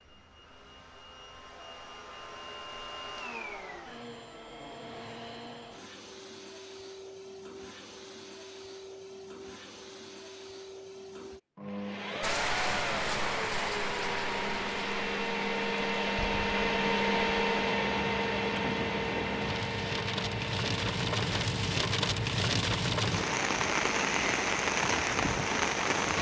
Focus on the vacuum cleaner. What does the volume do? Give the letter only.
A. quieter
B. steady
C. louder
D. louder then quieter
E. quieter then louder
D.